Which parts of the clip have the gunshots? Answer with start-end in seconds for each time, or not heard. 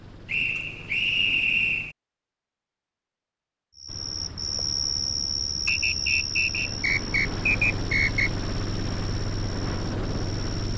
not heard.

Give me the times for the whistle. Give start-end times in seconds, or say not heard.
0.2-1.9, 5.7-8.3.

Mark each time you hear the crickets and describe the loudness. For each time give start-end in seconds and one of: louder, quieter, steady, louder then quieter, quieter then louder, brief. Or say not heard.
3.8-10.7 quieter.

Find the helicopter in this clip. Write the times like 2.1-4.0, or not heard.
0.0-1.9, 3.9-10.7.